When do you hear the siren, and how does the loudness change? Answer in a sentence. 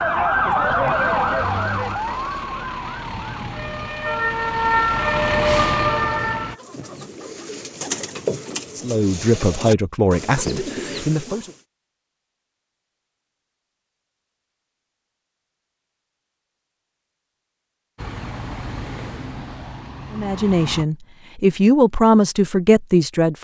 You can hear the siren from 0.0 to 6.5 s, getting quieter then louder.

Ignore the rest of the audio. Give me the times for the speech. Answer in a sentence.
You can hear the speech from 8.8 to 11.5 s and from 20.1 to 23.3 s.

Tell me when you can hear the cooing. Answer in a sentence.
You can hear the cooing from 6.5 to 11.6 s.